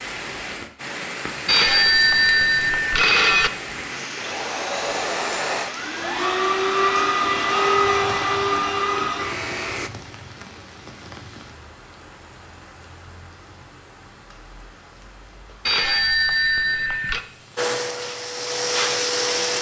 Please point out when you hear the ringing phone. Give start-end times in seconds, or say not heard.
1.4-3.5, 15.7-17.2.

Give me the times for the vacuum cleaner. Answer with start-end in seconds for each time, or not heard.
4.2-9.9, 17.6-19.5.